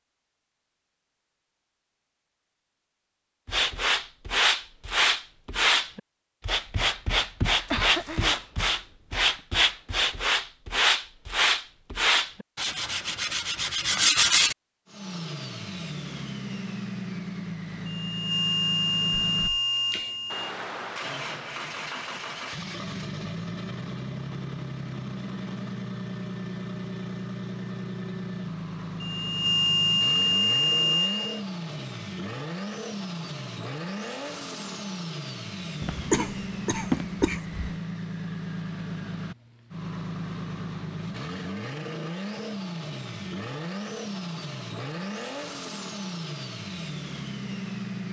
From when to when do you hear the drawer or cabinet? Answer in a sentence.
The drawer or cabinet can't be heard in this clip.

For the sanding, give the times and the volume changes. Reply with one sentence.
You can hear the sanding from 3.5 to 14.6 s, at a steady volume.